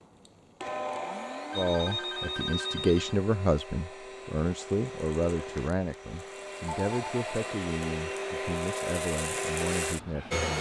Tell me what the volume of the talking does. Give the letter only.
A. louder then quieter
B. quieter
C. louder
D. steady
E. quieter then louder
B.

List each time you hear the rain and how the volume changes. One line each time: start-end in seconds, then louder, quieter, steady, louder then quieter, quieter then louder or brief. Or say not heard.
not heard.